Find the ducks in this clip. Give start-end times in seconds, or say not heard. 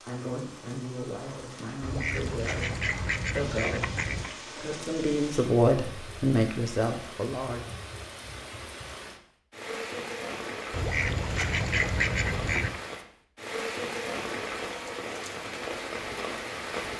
1.8-4.3, 10.7-12.8.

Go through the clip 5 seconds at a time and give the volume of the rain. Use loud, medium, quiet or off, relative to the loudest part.
medium, medium, loud, loud.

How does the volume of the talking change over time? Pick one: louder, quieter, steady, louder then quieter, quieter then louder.
louder.